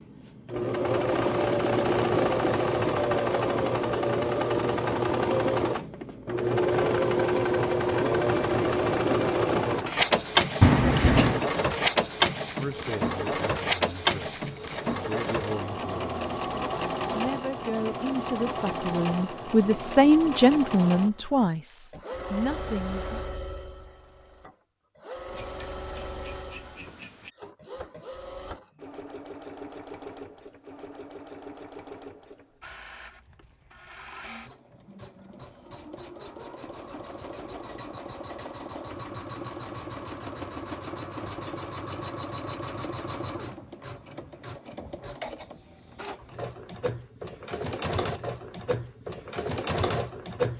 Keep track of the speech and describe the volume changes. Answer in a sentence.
The volume of the speech goes up, then down.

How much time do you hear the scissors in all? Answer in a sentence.
You can hear the scissors for 3 seconds altogether.